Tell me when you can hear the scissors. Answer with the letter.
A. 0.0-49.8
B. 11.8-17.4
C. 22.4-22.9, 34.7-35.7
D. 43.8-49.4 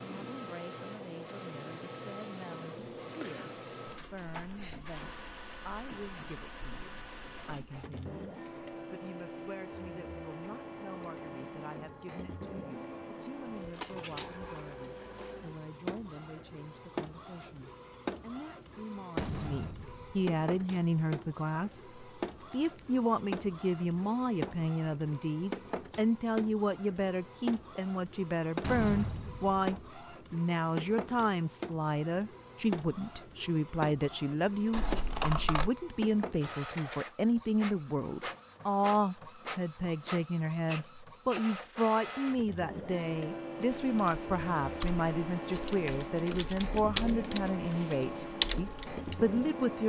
C.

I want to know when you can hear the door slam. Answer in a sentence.
The door slam can be heard from 19.1 to 20.2 s and from 28.6 to 29.7 s.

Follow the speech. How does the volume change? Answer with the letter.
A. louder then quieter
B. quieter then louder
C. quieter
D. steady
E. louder
E.